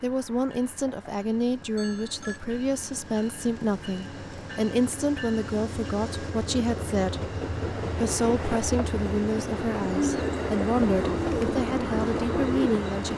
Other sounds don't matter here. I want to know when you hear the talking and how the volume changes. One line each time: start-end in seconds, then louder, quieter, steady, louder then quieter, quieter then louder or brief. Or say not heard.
0.0-13.1 steady.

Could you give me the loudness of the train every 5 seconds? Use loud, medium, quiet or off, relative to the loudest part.
quiet, loud, loud.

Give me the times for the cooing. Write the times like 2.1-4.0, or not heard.
9.9-13.1.